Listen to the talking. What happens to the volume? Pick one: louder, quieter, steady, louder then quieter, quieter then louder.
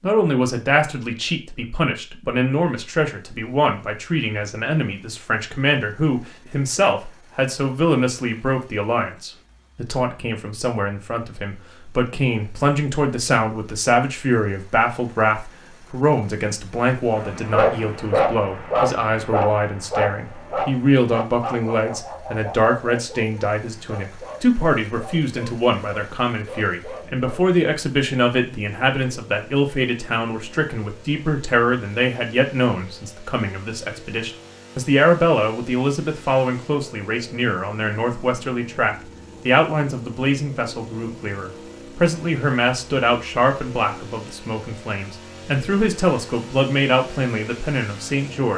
steady.